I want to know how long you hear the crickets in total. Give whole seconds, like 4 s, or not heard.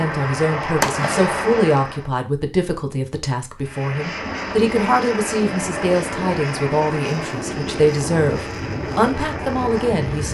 not heard.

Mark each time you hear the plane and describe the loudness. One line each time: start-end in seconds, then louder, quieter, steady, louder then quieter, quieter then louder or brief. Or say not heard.
0.0-2.1 brief
3.6-10.2 steady.